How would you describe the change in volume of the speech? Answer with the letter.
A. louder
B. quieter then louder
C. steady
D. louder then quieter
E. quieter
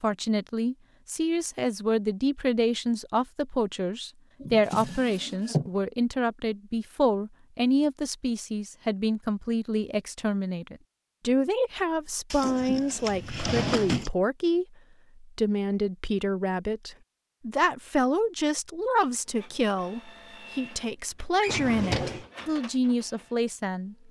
C.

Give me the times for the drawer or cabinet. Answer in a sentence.
The drawer or cabinet can be heard from 4.4 to 5.7 s, from 12.3 to 14.1 s and from 21.4 to 22.2 s.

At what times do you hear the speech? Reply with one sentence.
You can hear the speech from 0.0 to 24.0 s.